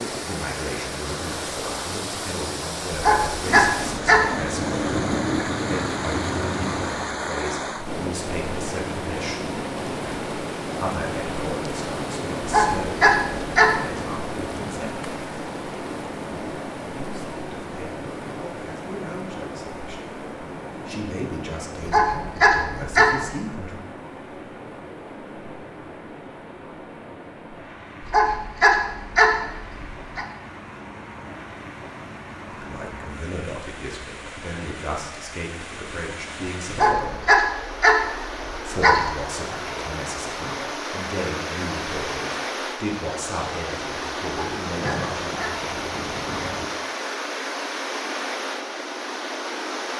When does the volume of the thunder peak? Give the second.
5 s.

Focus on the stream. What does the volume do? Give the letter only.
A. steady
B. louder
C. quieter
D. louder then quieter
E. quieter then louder
E.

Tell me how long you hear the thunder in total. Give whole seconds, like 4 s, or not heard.
6 s.